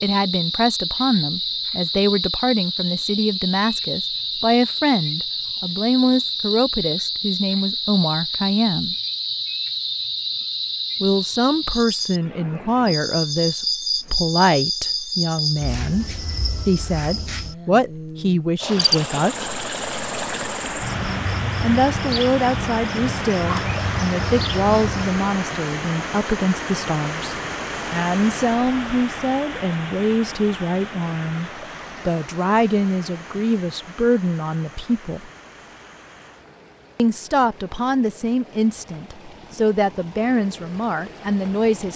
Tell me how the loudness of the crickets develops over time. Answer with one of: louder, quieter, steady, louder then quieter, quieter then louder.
steady.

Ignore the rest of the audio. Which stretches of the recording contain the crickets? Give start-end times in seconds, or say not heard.
0.0-25.2.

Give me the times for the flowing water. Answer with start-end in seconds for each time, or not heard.
18.6-41.9.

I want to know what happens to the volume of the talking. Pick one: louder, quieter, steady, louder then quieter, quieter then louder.
steady.